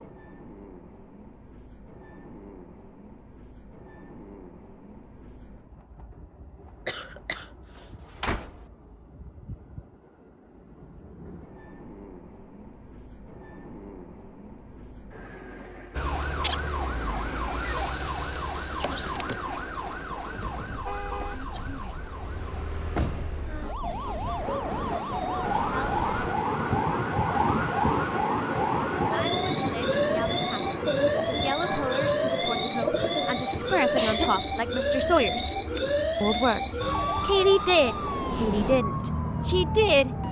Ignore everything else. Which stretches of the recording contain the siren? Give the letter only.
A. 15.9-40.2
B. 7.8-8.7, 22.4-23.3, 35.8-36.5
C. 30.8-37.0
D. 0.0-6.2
A.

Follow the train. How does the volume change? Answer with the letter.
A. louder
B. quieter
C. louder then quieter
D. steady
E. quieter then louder
A.